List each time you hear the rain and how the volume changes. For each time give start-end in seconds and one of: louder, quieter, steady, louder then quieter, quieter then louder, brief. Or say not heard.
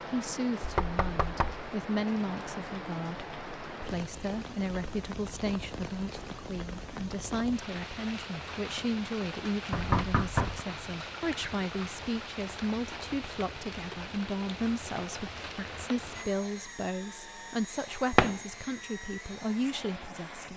0.0-16.2 steady.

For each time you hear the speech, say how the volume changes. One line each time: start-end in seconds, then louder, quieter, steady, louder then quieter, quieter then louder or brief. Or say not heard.
0.1-20.5 steady.